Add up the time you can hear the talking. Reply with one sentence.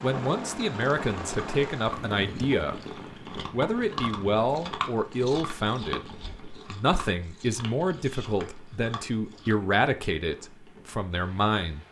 The talking can be heard for 11 seconds in total.